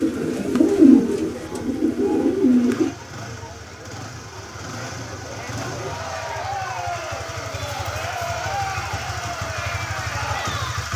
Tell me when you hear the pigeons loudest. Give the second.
1 s.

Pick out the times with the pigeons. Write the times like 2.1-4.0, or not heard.
0.0-2.9.